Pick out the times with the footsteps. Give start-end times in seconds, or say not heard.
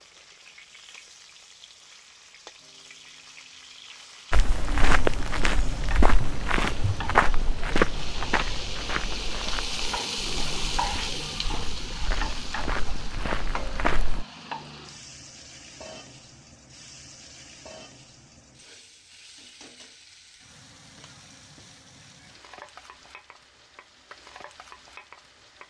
4.3-14.2.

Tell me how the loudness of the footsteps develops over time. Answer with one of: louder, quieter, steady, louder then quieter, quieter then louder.
quieter then louder.